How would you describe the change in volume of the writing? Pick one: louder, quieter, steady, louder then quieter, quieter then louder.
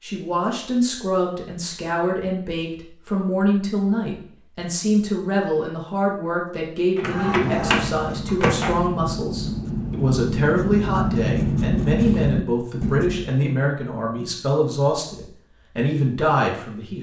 louder.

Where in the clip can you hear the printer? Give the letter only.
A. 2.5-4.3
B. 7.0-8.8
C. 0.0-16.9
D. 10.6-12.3
B.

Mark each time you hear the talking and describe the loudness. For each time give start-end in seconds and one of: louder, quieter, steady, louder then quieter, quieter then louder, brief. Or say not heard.
0.0-16.9 steady.